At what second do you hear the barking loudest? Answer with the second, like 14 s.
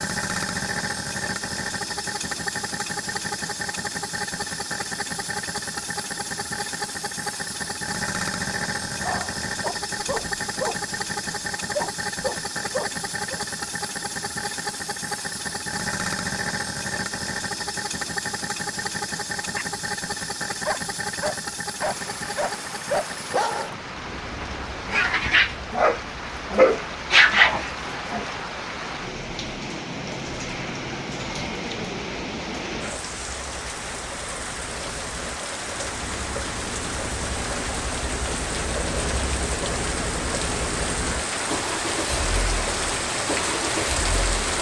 27 s.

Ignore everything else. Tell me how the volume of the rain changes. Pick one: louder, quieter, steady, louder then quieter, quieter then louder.
louder.